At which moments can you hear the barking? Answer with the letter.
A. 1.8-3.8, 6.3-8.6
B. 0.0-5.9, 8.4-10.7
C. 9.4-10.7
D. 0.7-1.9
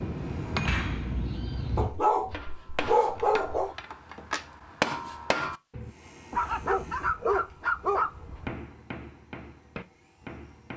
A.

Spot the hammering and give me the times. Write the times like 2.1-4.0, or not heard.
0.0-5.9, 8.4-10.7.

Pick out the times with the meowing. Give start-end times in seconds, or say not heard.
0.7-1.9.